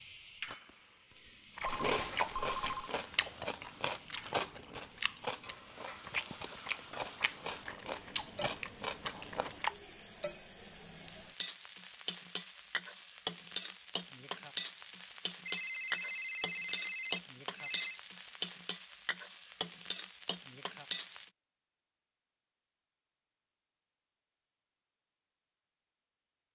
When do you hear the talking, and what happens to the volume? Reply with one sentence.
The talking can't be heard in this clip.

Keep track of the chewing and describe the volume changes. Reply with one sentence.
The loudness of the chewing goes down, then up.